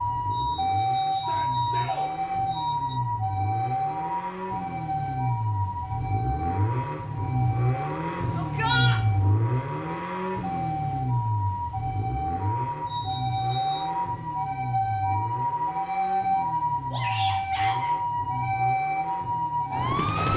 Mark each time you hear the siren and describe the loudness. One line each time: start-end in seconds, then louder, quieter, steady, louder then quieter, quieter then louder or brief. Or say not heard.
0.0-20.3 quieter then louder.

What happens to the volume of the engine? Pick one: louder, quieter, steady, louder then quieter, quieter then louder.
louder then quieter.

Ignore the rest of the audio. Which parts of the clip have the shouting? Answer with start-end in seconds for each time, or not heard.
1.1-2.1, 8.3-9.0, 16.9-17.9.